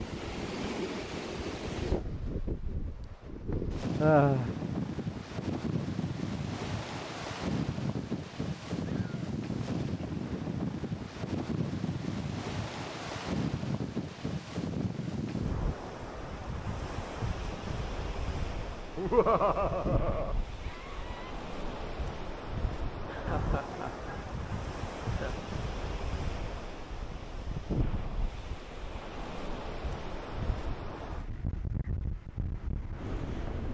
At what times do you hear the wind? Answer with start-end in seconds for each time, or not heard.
0.0-33.7.